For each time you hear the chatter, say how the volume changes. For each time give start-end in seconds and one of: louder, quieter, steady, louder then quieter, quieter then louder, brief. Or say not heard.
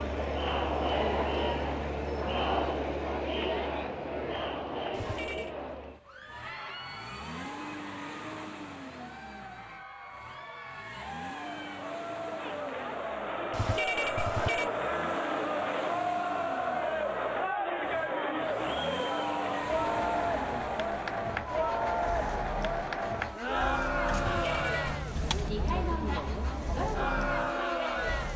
0.0-28.3 quieter then louder.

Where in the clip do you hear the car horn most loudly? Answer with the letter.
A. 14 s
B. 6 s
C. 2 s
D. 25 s
A.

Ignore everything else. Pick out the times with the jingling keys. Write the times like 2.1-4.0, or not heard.
24.1-25.5.